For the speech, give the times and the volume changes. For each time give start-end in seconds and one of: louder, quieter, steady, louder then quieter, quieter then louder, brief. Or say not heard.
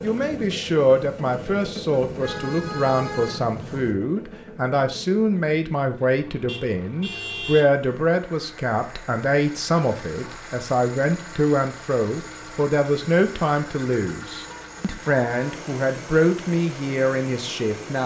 0.0-18.0 steady.